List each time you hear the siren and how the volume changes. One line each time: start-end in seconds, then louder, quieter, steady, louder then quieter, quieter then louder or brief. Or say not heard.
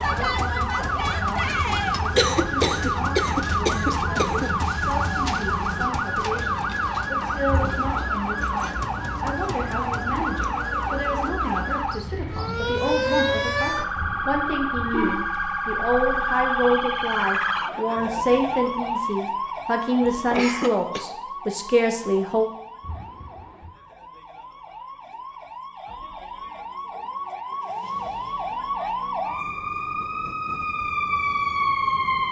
0.0-32.2 quieter then louder.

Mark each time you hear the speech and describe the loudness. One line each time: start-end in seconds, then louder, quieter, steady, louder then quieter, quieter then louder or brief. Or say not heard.
0.0-22.5 louder.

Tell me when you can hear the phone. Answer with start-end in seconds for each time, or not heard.
7.5-8.1, 13.9-15.2, 22.8-23.8.